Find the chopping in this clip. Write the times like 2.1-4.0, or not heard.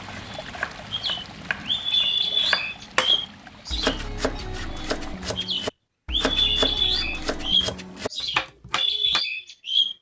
0.1-9.2.